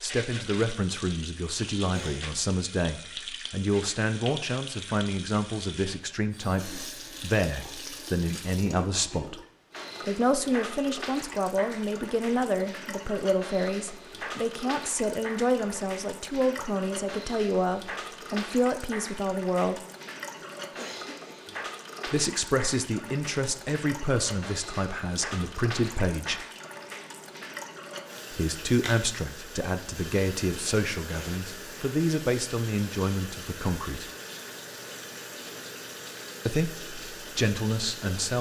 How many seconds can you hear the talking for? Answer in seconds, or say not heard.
31 s.